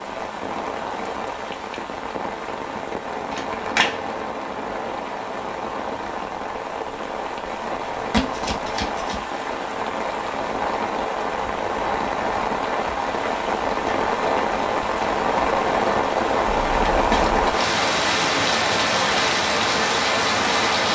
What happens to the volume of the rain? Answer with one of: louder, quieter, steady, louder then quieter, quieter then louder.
louder.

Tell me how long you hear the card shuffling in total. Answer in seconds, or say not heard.
3 s.